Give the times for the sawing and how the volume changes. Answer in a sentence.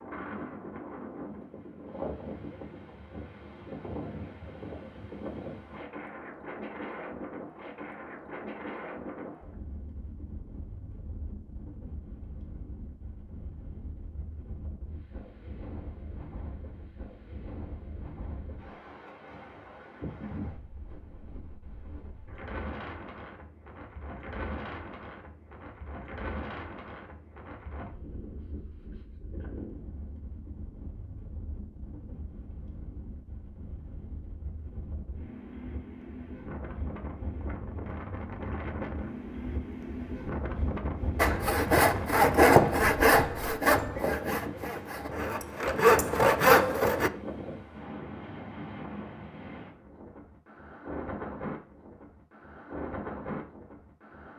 You can hear the sawing from 41.1 to 47.1 s, getting quieter then louder.